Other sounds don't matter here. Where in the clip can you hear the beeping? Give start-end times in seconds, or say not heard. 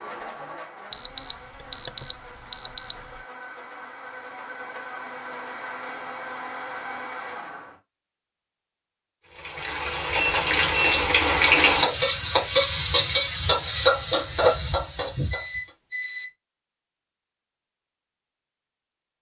0.9-3.0, 10.2-11.1, 15.3-16.3.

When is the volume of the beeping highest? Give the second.
2 s.